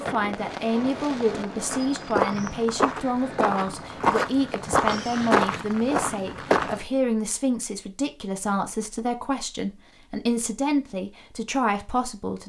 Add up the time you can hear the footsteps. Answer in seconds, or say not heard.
5 s.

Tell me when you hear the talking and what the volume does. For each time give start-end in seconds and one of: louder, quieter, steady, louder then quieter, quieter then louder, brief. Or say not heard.
0.0-12.4 steady.